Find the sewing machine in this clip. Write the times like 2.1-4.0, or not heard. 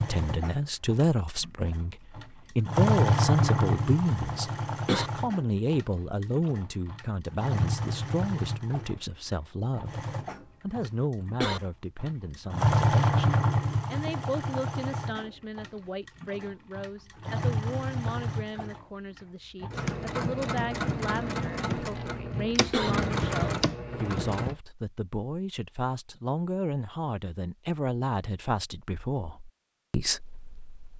0.0-24.6.